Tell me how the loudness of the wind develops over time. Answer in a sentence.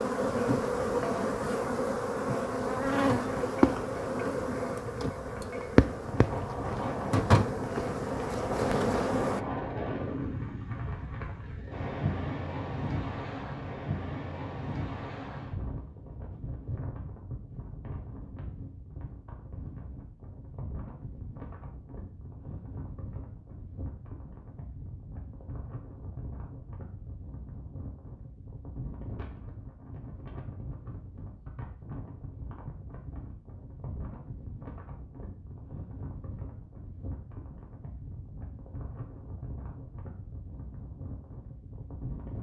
The loudness of the wind goes down.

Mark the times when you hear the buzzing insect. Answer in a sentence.
The buzzing insect can be heard from 0.0 to 9.4 s.